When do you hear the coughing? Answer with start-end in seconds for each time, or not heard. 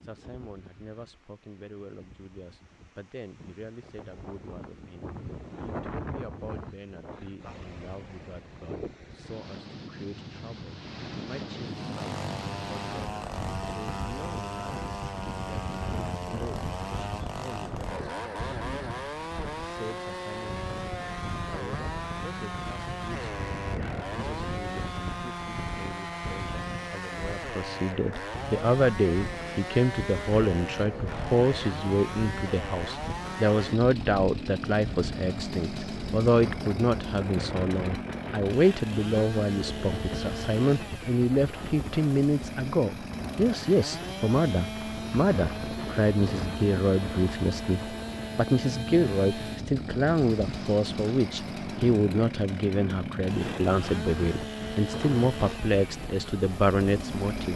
not heard.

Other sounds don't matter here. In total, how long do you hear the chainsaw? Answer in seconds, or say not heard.
46 s.